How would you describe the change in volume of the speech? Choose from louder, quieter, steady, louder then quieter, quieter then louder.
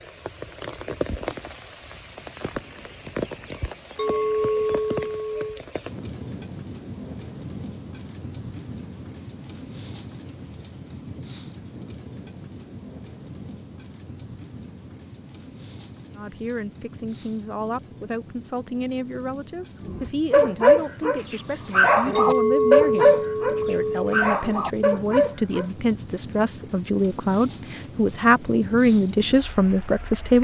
louder.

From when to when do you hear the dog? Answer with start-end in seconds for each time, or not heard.
19.8-25.6.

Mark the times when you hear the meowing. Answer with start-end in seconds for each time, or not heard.
not heard.